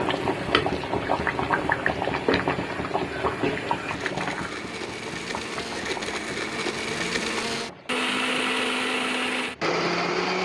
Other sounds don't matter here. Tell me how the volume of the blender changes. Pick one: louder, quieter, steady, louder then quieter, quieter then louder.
louder.